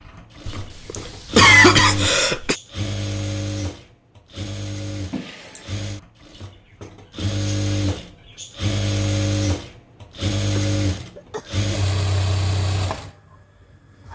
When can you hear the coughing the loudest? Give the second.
2 s.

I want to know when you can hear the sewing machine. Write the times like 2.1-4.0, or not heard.
0.0-14.1.